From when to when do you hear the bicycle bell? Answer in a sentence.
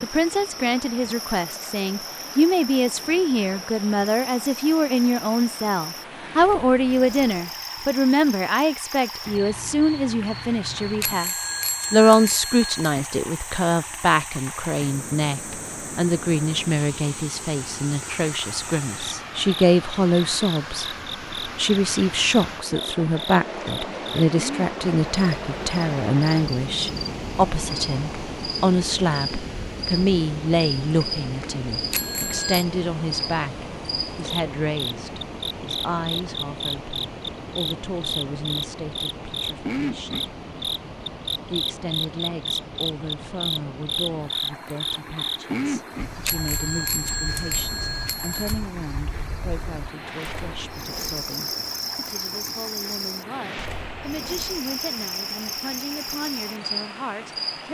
The bicycle bell can be heard from 11.0 to 12.9 s, from 31.9 to 32.6 s and from 46.2 to 48.6 s.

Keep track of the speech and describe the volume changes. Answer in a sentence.
The volume of the speech goes down.